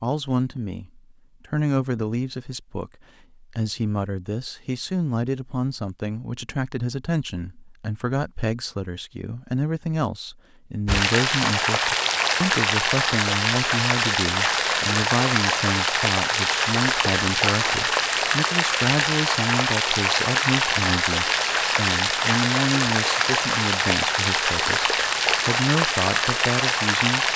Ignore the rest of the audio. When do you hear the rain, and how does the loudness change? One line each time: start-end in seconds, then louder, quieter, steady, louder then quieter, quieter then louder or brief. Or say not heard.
10.8-27.3 steady.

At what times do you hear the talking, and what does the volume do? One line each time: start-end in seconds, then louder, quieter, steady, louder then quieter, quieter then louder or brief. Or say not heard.
0.0-27.3 steady.